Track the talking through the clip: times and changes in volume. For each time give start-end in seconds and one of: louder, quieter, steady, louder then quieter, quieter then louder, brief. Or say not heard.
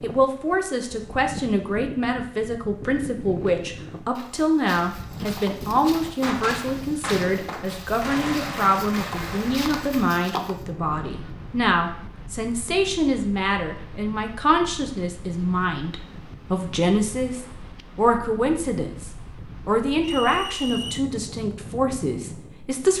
0.0-22.9 steady.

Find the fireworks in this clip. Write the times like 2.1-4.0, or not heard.
6.2-11.6.